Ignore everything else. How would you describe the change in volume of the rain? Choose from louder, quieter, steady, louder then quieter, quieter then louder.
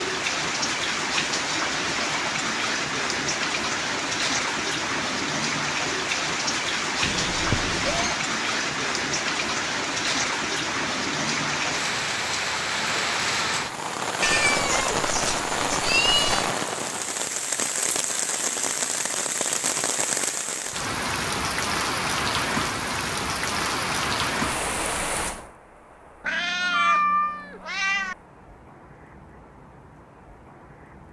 quieter.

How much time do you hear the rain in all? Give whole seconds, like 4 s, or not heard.
31 s.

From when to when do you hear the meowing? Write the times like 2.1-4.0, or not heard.
7.0-8.2, 14.2-16.5, 26.2-28.1.